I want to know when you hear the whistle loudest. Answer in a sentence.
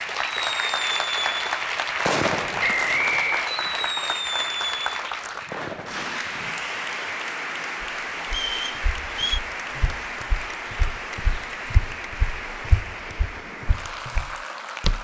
The loudest moment of the whistle is at 3 seconds.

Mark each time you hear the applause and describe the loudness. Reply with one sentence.
You can hear the applause from 0.0 to 14.9 s, getting quieter.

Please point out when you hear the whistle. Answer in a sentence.
The whistle can be heard from 2.6 to 3.5 s and from 8.2 to 9.4 s.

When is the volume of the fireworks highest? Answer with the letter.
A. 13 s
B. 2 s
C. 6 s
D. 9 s
B.